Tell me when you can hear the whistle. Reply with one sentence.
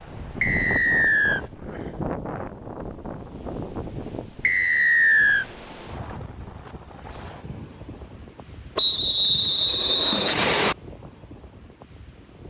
The whistle can be heard from 0.4 to 1.4 s, from 4.4 to 5.5 s and from 8.8 to 10.8 s.